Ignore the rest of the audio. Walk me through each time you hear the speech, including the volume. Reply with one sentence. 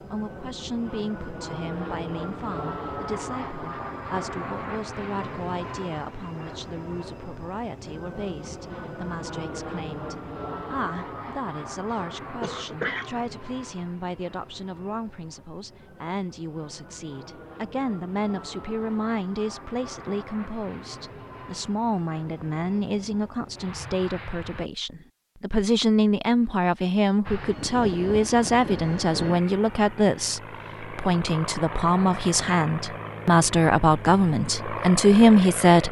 You can hear the speech from 0.0 to 35.8 s, getting louder.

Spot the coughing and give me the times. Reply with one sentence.
The coughing can be heard from 11.9 to 13.2 s.